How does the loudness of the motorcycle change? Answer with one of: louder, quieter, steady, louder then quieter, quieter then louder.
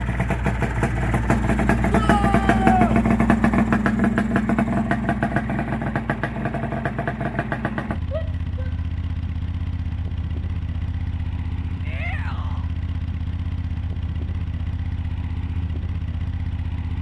quieter.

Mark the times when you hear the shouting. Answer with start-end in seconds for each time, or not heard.
1.9-3.0, 8.1-8.8, 11.8-12.7.